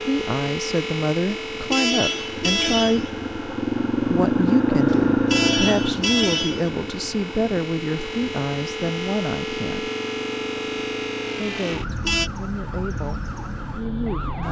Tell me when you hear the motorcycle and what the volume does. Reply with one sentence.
The motorcycle can be heard from 0.0 to 14.4 s, getting louder then quieter.